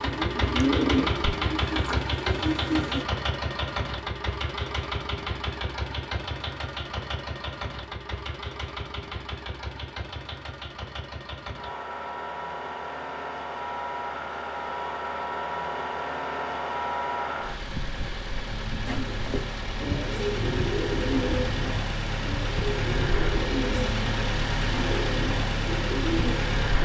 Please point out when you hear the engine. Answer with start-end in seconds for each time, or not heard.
0.0-26.8.